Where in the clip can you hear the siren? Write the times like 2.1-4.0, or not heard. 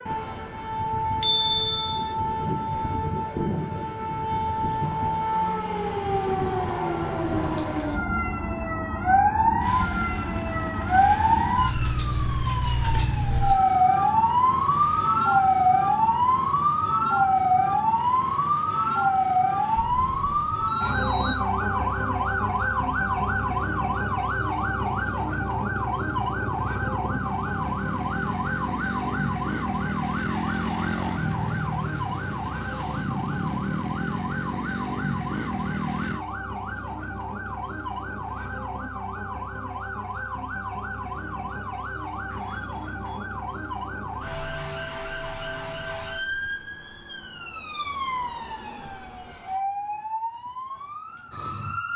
0.0-51.9.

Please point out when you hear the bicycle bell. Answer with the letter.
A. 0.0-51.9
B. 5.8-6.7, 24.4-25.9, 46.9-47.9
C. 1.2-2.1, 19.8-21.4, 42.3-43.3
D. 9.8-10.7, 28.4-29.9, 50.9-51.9
C.